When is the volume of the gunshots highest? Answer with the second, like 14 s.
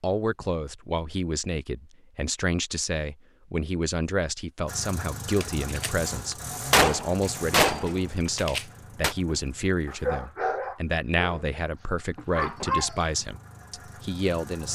7 s.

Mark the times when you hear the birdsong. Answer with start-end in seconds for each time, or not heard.
not heard.